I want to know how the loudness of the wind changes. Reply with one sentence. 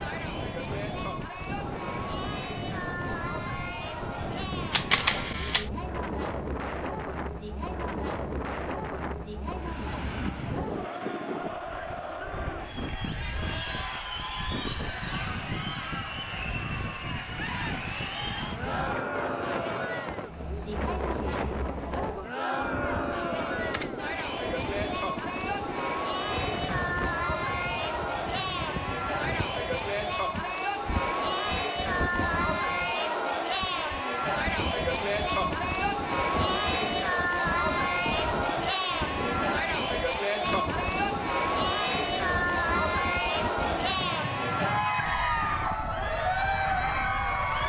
The loudness of the wind stays about the same.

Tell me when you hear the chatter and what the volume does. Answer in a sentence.
The chatter can be heard from 0.0 to 47.6 s, getting louder.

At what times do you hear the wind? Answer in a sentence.
You can hear the wind from 0.0 to 47.6 s.